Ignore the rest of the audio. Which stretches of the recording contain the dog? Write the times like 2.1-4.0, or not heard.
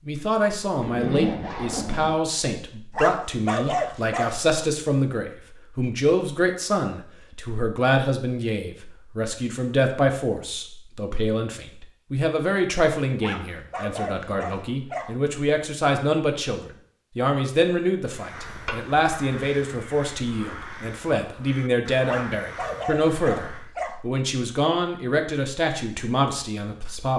2.9-4.4, 13.2-15.2, 22.1-24.0.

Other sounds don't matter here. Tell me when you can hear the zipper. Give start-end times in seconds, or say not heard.
0.8-2.1, 18.4-19.6.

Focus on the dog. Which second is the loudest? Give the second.
4 s.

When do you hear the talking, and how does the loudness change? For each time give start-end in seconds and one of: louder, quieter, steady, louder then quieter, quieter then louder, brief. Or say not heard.
0.1-27.1 steady.